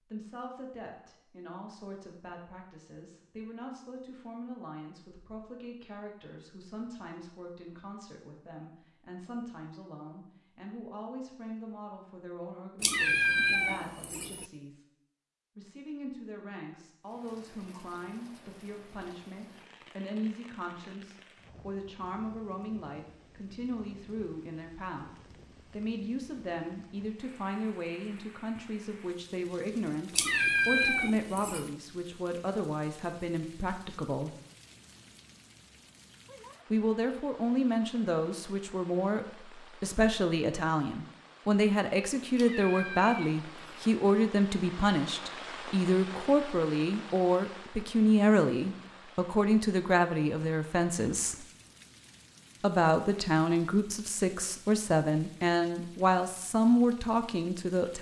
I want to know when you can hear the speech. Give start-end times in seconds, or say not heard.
0.1-14.8, 15.6-25.1, 25.7-34.4, 36.7-51.5, 52.6-57.9.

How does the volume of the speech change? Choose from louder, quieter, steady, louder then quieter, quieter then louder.
louder.